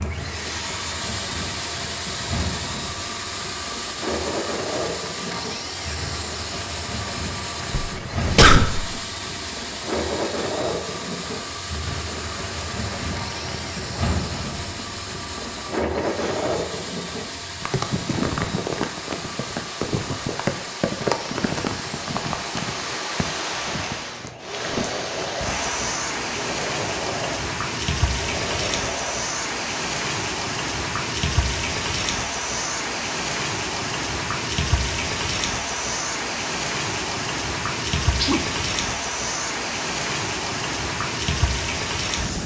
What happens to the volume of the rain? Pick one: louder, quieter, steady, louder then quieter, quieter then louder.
louder.